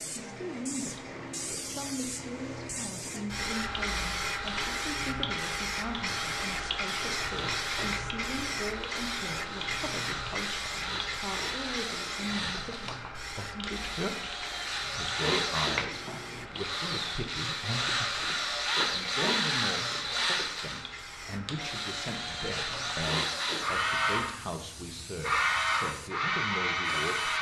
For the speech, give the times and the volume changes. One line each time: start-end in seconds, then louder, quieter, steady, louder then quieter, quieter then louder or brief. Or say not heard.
0.2-27.3 steady.